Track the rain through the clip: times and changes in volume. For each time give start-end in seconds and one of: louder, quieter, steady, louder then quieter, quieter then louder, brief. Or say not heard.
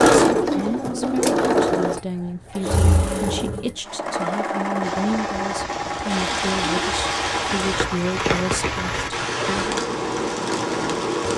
4.8-11.3 louder.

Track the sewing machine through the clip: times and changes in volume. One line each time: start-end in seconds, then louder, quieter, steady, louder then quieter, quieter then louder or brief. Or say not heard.
0.0-11.3 quieter.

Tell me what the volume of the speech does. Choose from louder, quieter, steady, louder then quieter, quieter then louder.
steady.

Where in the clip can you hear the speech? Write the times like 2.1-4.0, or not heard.
0.1-9.7.